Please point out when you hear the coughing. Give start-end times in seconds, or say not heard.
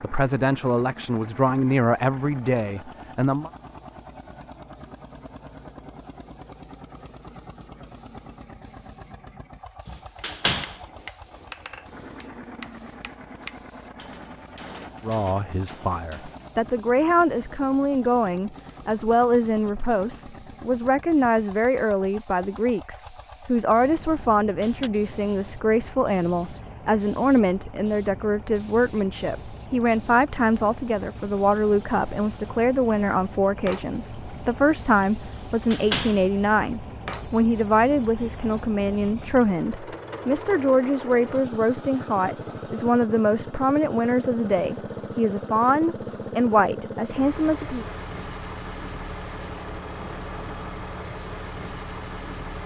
not heard.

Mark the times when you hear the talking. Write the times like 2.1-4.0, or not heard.
0.0-3.5, 15.1-47.9.